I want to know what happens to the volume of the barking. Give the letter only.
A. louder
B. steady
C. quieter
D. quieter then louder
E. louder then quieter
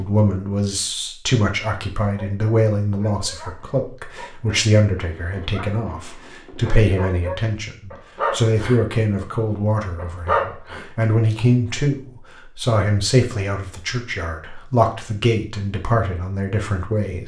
A.